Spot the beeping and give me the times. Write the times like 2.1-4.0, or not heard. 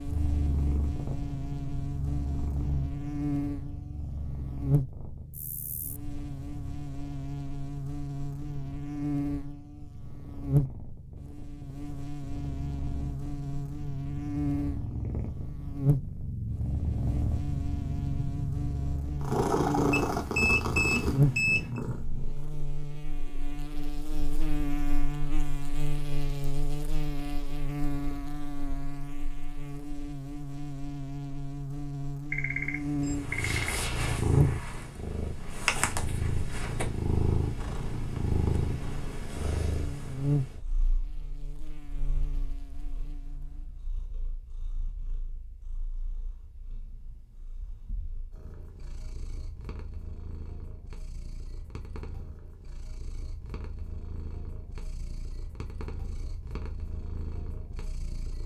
19.9-21.8, 32.3-33.8.